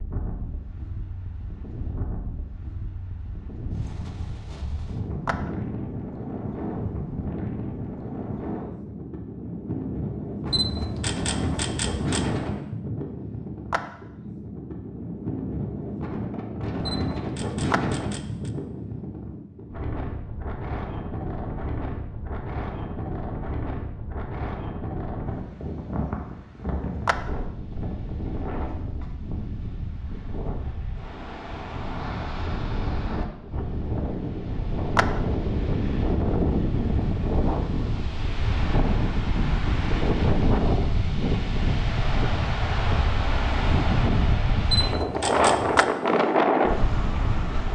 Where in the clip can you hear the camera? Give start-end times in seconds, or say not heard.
10.4-12.3, 16.8-18.5, 44.6-45.9.